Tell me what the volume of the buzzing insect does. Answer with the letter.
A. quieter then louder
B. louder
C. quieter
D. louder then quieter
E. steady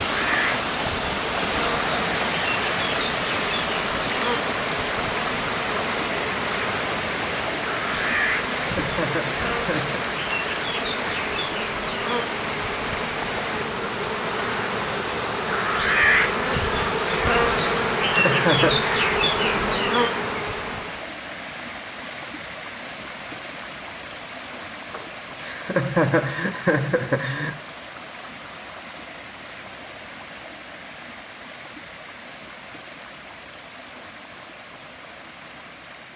B.